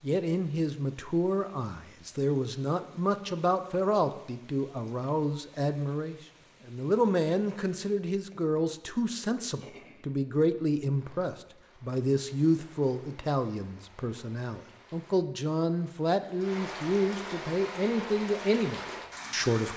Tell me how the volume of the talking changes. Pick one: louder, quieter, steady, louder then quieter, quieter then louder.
steady.